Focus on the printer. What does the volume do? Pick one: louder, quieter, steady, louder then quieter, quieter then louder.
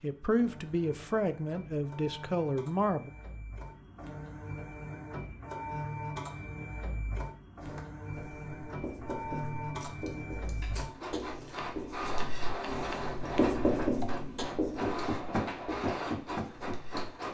louder.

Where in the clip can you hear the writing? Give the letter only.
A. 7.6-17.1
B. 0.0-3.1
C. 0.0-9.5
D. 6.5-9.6
A.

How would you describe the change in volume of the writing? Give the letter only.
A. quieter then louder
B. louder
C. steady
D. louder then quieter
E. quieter
D.